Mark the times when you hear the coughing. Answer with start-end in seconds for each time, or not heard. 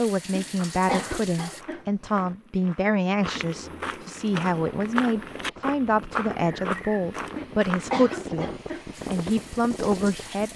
0.3-2.4, 7.3-8.8.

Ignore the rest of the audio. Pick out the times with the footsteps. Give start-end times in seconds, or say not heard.
0.5-8.1.